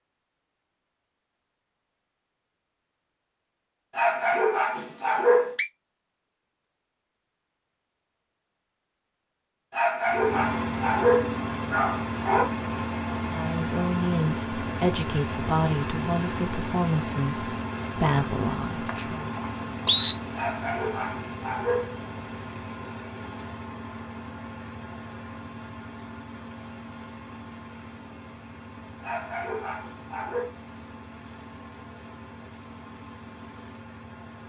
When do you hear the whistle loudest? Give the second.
20 s.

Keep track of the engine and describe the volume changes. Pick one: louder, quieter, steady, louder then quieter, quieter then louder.
quieter.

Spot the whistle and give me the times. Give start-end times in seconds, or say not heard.
5.0-5.7, 18.1-20.1.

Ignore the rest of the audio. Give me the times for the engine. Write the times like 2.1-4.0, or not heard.
10.1-34.4.